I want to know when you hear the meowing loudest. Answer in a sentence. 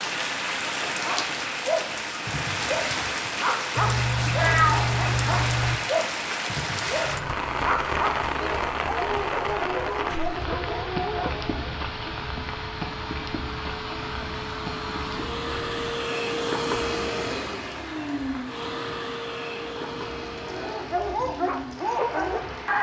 The loudest moment of the meowing is at 5 seconds.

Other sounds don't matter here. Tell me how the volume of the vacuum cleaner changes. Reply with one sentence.
The loudness of the vacuum cleaner goes up, then down.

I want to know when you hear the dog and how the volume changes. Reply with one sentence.
The dog can be heard from 0.9 to 11.7 s, at a steady volume; and briefly from 20.4 to 22.7 s.